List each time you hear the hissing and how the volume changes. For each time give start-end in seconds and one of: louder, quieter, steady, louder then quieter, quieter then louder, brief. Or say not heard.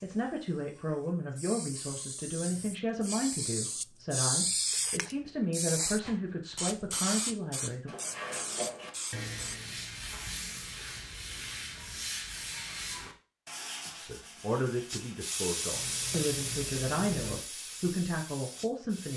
0.0-10.7 louder then quieter
14.8-19.1 quieter.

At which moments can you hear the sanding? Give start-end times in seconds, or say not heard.
7.8-17.4.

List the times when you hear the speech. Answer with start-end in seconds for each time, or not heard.
0.0-7.9, 13.9-19.1.